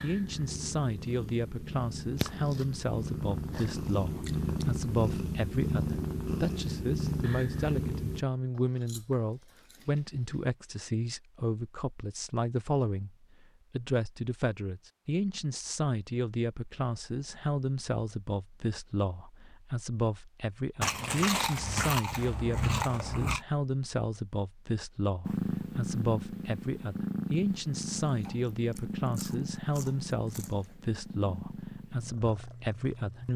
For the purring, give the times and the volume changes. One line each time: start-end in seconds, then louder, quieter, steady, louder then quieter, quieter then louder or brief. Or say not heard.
0.0-8.2 louder
25.2-33.3 quieter.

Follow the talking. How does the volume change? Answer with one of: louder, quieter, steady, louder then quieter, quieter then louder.
steady.